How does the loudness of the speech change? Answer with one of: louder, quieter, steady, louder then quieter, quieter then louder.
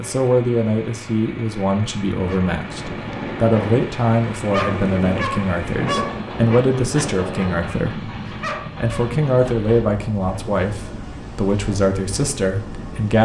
steady.